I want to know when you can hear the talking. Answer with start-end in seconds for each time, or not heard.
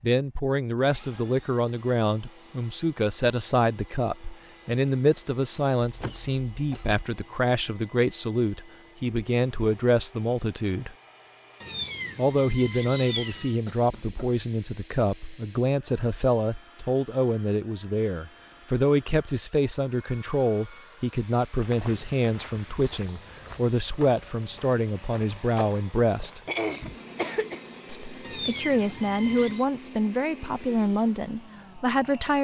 0.0-10.9, 12.2-26.4, 27.9-32.4.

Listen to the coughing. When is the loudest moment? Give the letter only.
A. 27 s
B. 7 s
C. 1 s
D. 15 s
A.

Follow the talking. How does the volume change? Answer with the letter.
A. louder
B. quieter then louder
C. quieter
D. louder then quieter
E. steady
E.